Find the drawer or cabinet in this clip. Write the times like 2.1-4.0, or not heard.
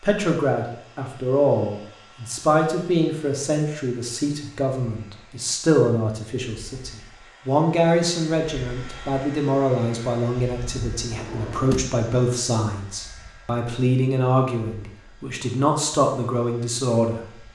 11.1-11.9.